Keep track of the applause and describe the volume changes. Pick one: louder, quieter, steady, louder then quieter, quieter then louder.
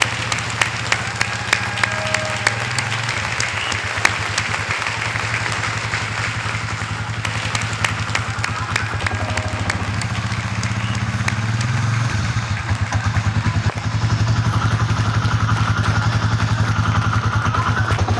quieter.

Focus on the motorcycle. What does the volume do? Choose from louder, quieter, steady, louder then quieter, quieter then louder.
louder.